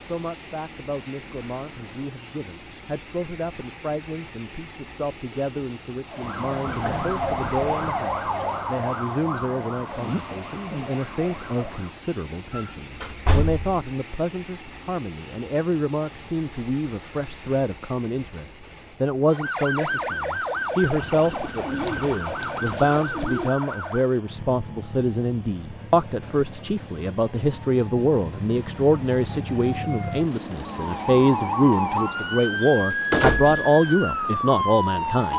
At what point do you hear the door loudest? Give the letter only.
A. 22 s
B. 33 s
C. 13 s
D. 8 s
B.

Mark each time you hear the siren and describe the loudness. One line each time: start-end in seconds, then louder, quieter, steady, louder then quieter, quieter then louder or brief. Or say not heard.
6.0-12.0 quieter
19.3-35.3 quieter then louder.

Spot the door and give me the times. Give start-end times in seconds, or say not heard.
6.7-8.0, 12.5-13.8, 32.6-33.7.